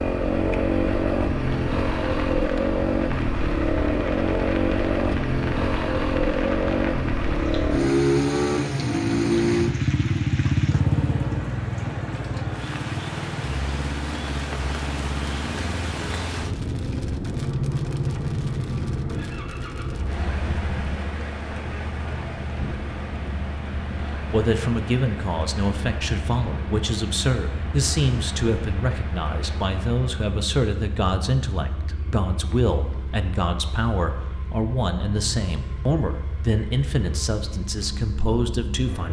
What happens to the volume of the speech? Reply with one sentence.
The loudness of the speech stays about the same.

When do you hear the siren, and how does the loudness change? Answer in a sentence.
The siren can't be heard in this clip.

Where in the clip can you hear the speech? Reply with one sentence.
The speech can be heard from 24.2 to 39.0 s.